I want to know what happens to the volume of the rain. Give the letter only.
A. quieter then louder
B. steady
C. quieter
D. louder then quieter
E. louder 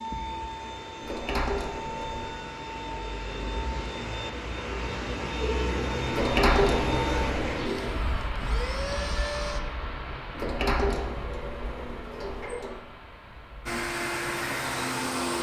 D.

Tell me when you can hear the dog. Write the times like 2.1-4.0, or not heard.
not heard.